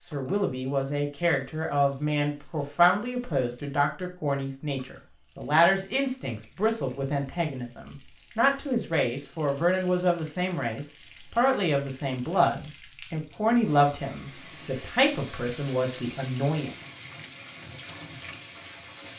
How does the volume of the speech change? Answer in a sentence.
The volume of the speech stays about the same.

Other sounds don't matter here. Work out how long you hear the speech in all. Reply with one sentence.
You can hear the speech for 17 seconds altogether.